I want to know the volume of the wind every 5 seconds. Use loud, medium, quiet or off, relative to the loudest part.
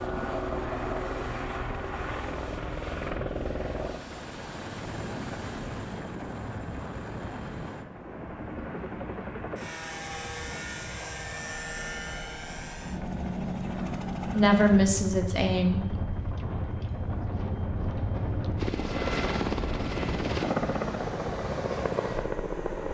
medium, medium, medium, loud, loud.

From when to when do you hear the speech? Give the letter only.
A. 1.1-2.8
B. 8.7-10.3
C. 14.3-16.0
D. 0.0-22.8
C.